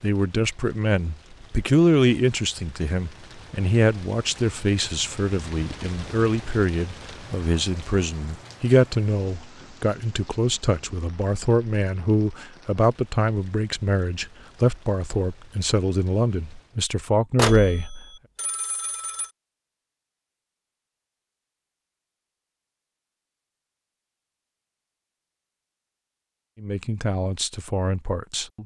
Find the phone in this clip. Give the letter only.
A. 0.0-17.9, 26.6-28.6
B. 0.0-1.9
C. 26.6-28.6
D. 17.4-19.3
D.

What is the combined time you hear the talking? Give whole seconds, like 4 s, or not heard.
20 s.